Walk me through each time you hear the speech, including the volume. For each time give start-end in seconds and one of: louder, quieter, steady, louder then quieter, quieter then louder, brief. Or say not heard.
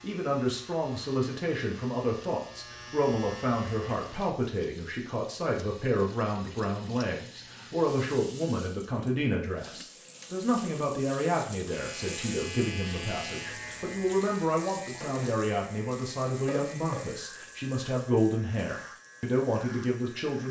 0.0-20.4 steady.